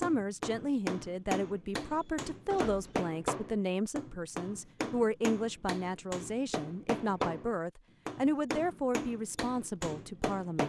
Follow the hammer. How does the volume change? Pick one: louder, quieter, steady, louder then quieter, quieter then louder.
steady.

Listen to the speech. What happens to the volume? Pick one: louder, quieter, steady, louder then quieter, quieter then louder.
steady.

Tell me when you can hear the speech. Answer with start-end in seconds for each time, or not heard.
0.0-10.6.